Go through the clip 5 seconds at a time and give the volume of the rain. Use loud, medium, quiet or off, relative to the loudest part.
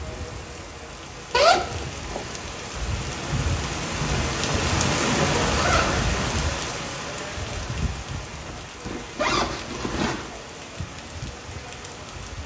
loud, loud, medium.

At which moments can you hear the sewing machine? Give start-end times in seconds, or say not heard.
not heard.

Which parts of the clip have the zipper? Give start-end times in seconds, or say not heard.
1.3-2.4, 4.5-6.2, 8.4-10.3.